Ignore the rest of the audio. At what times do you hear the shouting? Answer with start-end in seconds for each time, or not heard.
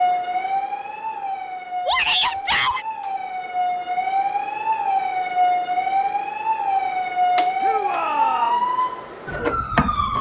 1.9-2.9, 7.6-8.7.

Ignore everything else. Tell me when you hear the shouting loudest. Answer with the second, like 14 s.
2 s.